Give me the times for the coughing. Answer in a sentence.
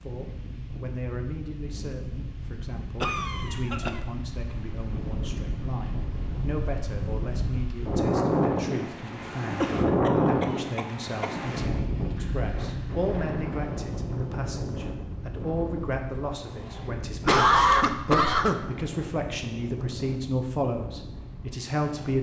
The coughing can be heard from 3.0 to 4.0 s, from 9.6 to 11.3 s and from 17.2 to 18.6 s.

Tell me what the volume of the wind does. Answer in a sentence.
The loudness of the wind goes up, then down.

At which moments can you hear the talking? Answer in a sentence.
You can hear the talking from 0.0 to 22.1 s.